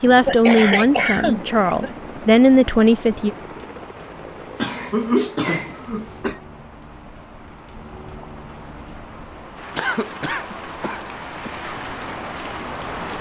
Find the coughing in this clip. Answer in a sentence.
The coughing can be heard from 0.2 to 1.9 s, from 4.5 to 6.4 s and from 9.8 to 11.5 s.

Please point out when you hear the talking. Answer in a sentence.
The talking can be heard from 0.0 to 3.3 s.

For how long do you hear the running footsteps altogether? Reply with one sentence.
The running footsteps can't be heard in this clip.